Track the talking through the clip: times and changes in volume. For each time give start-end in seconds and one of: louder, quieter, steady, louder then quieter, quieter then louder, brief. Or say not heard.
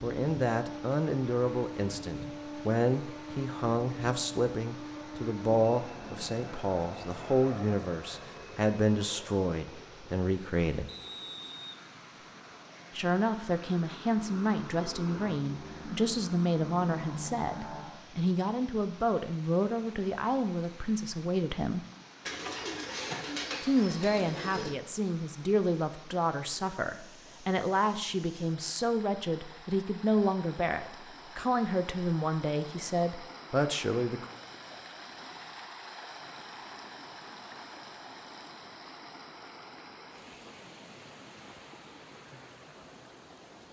0.0-10.9 steady
12.9-21.9 steady
23.6-34.2 steady.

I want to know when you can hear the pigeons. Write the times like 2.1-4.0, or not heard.
22.2-24.8.